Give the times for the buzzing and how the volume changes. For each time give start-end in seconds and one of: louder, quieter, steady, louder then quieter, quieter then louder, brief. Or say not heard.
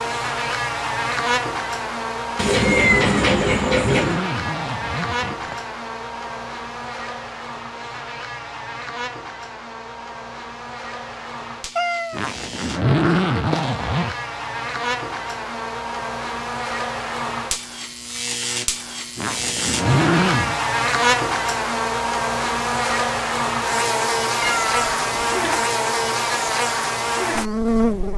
0.0-28.1 quieter then louder.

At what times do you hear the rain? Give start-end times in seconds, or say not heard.
not heard.